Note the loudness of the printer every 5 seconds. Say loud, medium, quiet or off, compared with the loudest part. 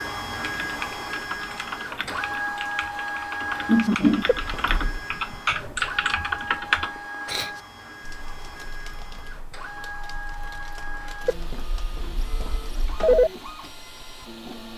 loud, medium, medium.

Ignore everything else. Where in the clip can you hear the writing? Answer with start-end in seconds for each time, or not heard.
not heard.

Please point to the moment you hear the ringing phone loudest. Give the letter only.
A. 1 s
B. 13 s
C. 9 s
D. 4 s
B.